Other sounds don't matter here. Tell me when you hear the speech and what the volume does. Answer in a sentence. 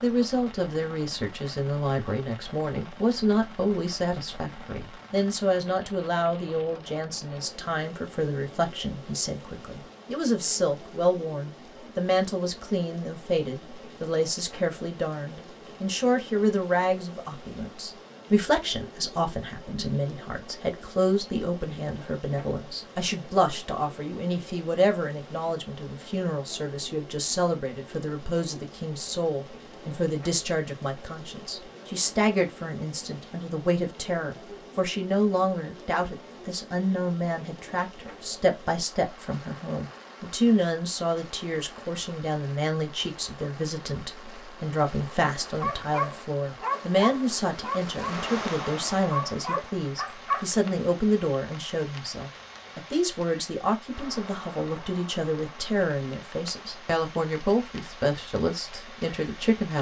The speech can be heard from 0.0 to 59.7 s, at a steady volume.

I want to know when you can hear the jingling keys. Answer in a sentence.
You can't hear the jingling keys here.